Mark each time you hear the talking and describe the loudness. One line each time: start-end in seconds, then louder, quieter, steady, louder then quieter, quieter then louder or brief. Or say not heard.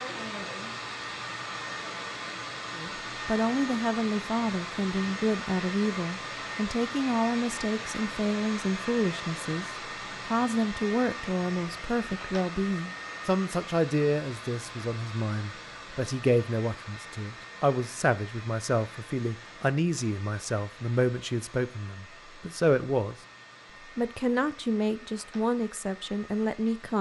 2.8-9.7 steady
10.2-23.1 steady
23.9-26.9 brief.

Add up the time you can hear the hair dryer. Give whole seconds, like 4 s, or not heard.
27 s.